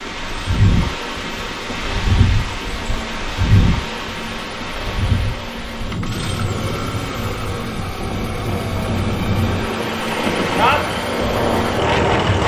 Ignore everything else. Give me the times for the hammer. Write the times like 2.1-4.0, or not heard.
not heard.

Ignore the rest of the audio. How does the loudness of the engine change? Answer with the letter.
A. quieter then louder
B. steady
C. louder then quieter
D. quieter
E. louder
E.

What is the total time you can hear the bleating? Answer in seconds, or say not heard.
not heard.